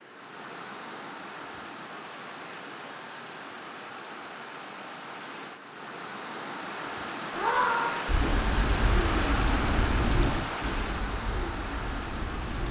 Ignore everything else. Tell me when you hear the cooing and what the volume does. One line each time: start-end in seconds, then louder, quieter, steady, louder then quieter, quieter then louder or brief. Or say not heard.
8.1-12.6 quieter.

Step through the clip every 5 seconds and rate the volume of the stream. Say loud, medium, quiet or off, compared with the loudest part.
medium, loud, loud.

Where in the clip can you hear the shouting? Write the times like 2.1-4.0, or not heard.
7.3-8.1.